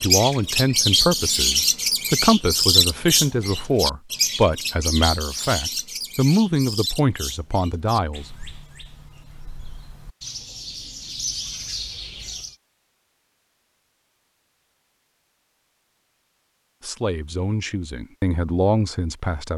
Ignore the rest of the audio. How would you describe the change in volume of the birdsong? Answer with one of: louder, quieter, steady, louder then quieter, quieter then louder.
quieter then louder.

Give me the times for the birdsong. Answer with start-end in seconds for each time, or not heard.
0.0-12.6.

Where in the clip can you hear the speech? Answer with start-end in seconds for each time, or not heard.
0.0-8.2, 16.8-19.5.